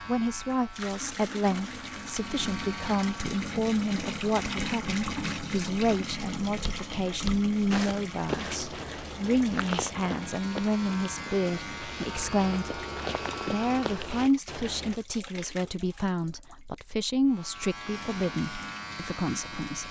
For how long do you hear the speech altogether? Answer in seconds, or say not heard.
19 s.